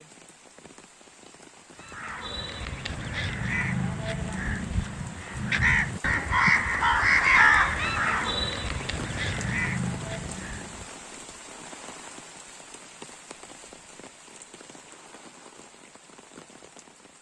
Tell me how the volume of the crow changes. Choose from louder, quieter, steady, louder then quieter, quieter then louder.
louder then quieter.